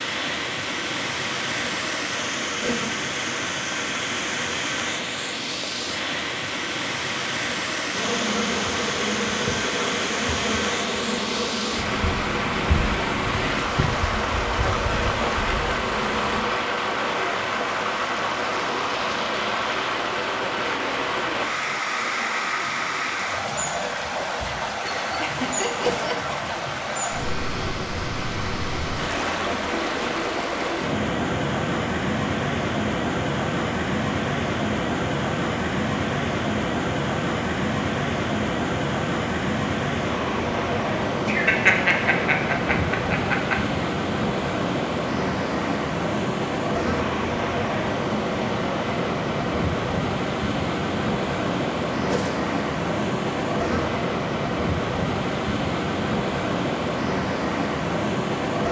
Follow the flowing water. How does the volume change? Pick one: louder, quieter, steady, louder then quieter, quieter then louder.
steady.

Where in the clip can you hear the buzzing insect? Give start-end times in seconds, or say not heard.
7.9-16.4.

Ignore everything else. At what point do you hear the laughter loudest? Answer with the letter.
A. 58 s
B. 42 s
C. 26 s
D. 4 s
B.